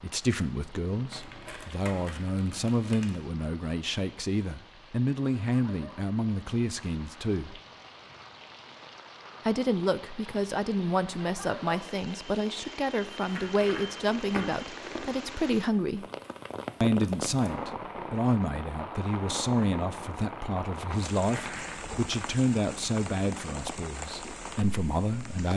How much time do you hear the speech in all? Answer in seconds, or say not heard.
23 s.